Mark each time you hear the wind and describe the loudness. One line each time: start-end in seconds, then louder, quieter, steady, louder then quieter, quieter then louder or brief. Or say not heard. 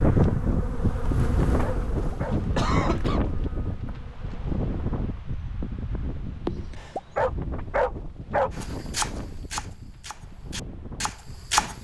0.0-11.7 quieter.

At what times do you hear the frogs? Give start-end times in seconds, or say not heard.
not heard.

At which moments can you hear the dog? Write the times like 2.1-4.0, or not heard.
1.6-3.0, 7.2-8.5.